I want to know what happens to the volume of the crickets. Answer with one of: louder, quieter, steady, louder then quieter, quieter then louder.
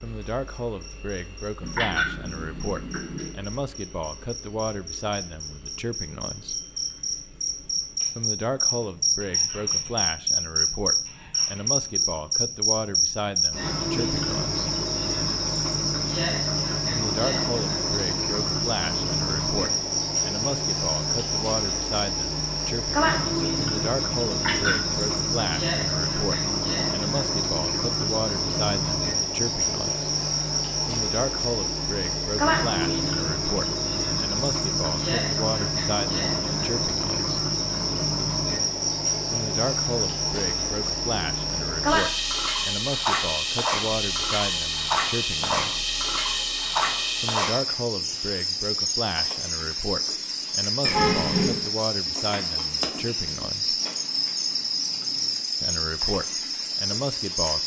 steady.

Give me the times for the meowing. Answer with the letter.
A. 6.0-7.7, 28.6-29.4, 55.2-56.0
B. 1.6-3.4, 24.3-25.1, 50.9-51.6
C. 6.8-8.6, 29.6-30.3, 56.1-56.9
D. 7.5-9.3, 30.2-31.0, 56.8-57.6
B.